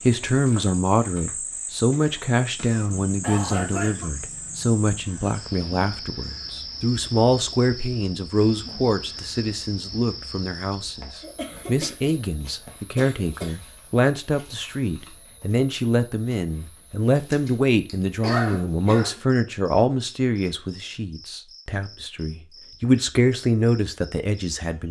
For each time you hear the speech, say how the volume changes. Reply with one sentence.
The speech can be heard from 0.0 to 24.8 s, at a steady volume.